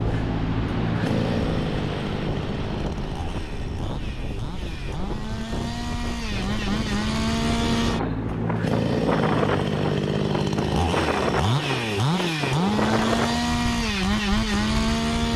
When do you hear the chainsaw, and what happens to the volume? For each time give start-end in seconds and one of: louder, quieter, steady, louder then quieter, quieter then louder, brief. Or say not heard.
0.0-15.3 quieter then louder.